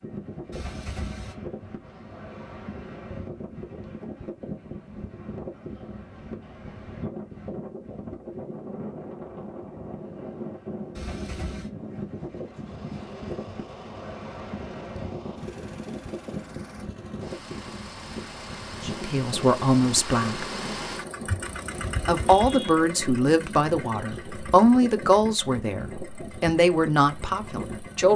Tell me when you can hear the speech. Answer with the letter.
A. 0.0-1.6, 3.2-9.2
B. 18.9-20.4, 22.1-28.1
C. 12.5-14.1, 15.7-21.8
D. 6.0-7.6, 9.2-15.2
B.